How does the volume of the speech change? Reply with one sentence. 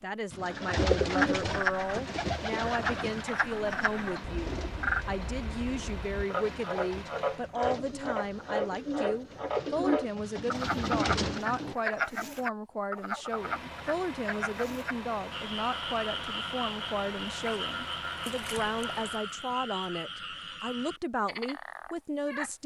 The loudness of the speech stays about the same.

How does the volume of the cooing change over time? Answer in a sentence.
The volume of the cooing goes down, then up.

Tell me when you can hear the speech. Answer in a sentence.
The speech can be heard from 0.0 to 22.6 s.